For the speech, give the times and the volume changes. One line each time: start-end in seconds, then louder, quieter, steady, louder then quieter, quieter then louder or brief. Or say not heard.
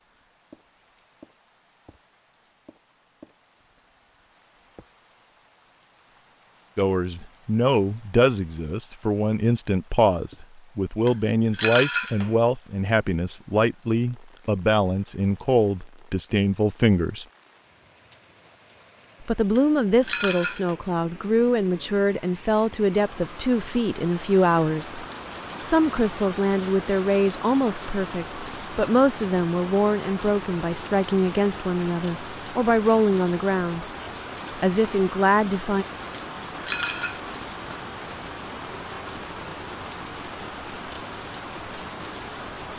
6.8-17.2 steady
19.2-33.9 steady
34.5-35.9 brief.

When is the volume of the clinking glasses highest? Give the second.
12 s.